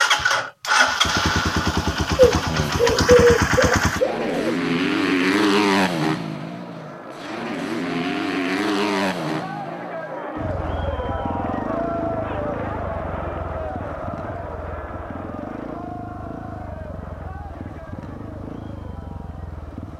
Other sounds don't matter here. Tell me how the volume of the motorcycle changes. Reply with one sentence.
The volume of the motorcycle goes down.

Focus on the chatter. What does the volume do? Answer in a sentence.
The volume of the chatter goes up, then down.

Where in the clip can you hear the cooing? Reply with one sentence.
You can hear the cooing from 2.1 to 4.5 s.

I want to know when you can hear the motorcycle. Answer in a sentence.
The motorcycle can be heard from 0.0 to 19.9 s.